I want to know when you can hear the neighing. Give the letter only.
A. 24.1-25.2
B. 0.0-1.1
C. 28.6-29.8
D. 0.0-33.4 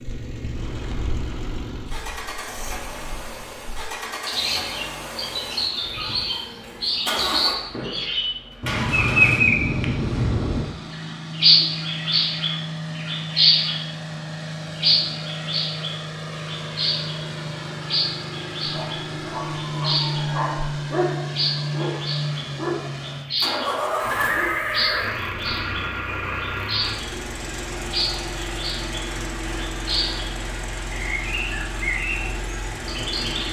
A.